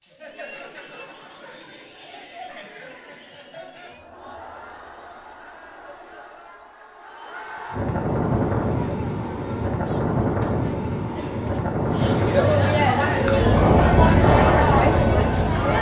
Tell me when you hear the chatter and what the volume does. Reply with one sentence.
You can hear the chatter from 0.0 to 15.7 s, getting louder.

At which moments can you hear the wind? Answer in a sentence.
You can hear the wind from 7.7 to 15.7 s.